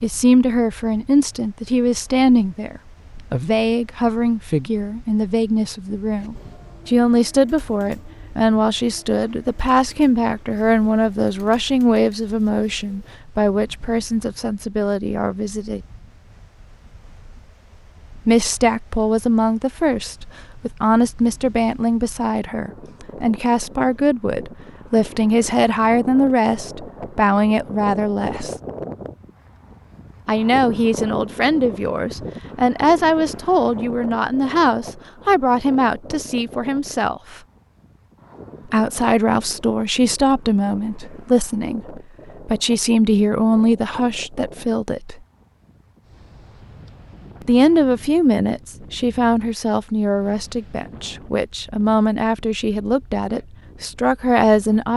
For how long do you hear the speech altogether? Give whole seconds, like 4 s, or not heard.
47 s.